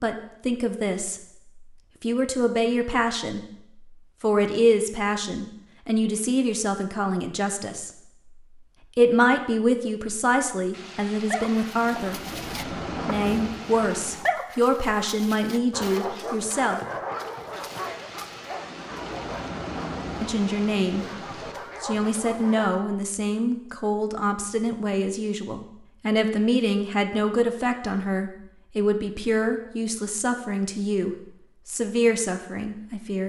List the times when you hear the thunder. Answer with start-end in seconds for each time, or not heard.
10.7-14.3, 17.5-21.6.